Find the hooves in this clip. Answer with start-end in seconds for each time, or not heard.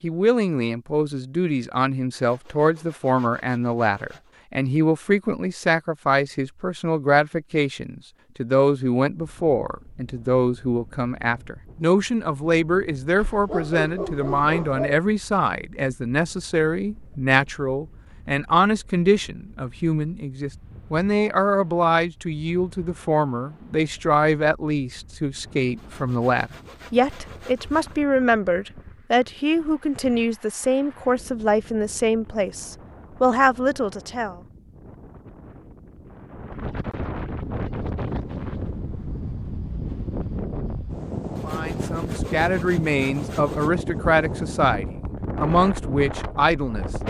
not heard.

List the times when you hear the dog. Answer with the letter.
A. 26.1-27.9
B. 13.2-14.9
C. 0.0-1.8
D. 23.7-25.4
B.